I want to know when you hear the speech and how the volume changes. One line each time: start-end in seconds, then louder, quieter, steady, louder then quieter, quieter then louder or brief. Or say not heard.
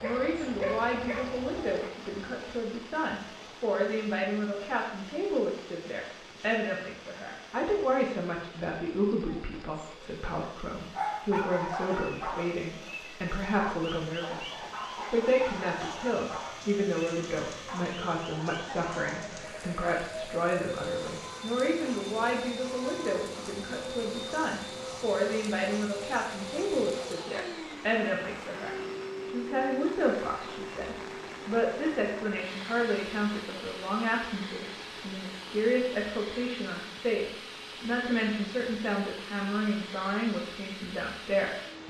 0.0-41.5 steady.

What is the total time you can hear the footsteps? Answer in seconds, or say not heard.
not heard.